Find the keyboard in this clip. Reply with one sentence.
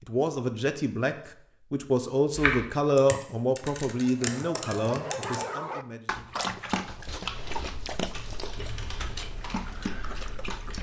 The keyboard can be heard from 2.4 to 5.5 s and from 7.2 to 10.7 s.